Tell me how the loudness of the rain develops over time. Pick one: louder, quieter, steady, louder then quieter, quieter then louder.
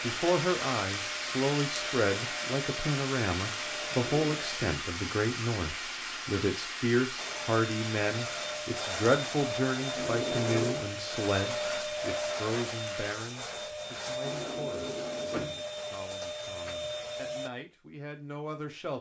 quieter.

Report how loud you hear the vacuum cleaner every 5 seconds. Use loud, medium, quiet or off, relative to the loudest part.
medium, loud, loud, loud.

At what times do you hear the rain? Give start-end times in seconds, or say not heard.
0.0-13.2.